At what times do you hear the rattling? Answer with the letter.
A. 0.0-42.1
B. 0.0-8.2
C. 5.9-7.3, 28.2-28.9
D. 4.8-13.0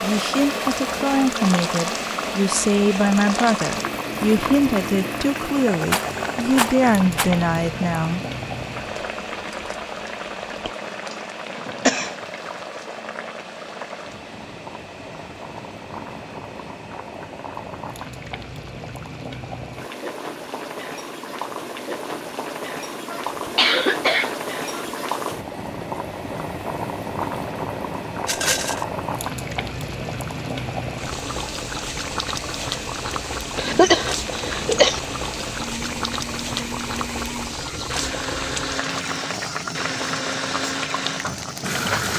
C.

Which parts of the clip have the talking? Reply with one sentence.
The talking can be heard from 0.0 to 8.2 s.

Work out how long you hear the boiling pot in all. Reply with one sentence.
You can hear the boiling pot for 42 seconds altogether.